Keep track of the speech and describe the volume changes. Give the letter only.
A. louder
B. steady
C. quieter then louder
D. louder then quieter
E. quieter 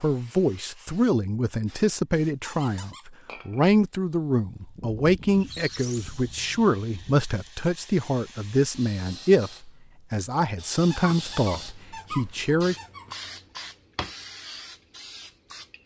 B.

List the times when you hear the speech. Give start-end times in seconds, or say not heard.
0.0-12.8.